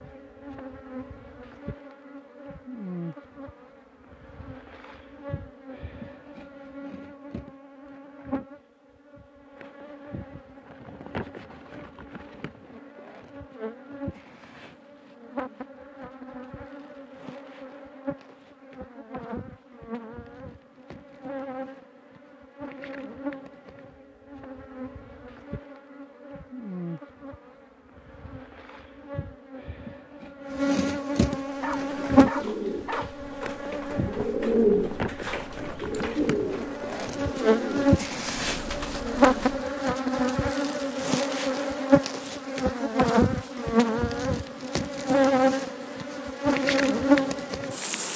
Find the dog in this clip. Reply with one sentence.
You can hear the dog from 31.6 to 33.1 s.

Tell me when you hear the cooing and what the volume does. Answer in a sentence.
You can hear the cooing from 31.4 to 39.6 s, getting louder then quieter.